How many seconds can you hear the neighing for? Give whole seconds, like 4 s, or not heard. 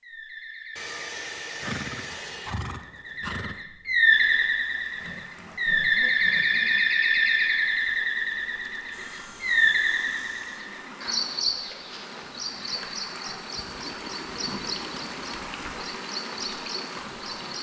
2 s.